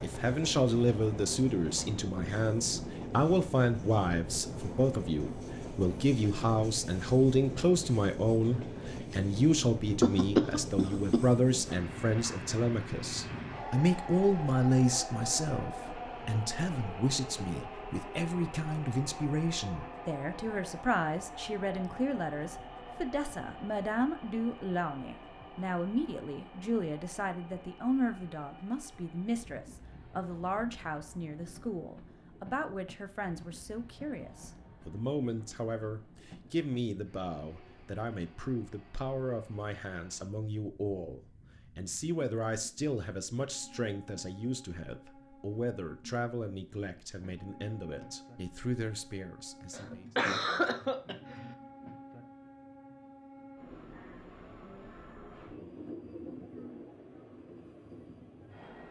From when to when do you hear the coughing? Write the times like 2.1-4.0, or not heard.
10.0-11.2, 49.7-51.5.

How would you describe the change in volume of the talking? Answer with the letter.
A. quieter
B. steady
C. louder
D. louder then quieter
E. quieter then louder
A.